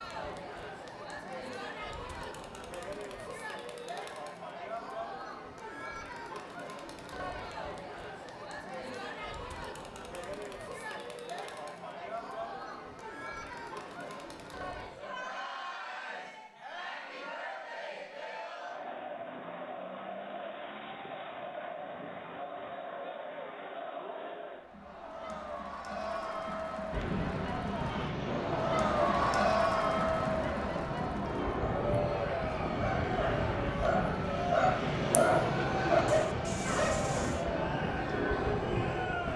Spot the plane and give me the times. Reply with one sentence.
You can hear the plane from 26.9 to 39.3 s.